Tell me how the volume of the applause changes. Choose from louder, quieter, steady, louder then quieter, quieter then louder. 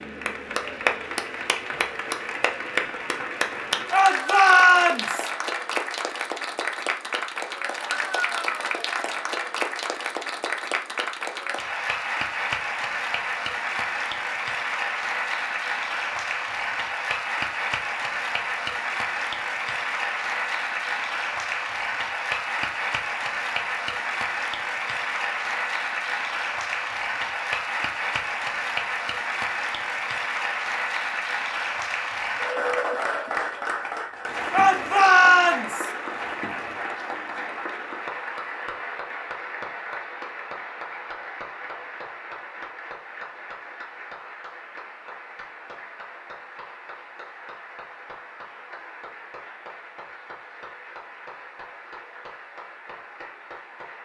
quieter.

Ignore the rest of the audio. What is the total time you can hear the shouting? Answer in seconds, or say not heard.
3 s.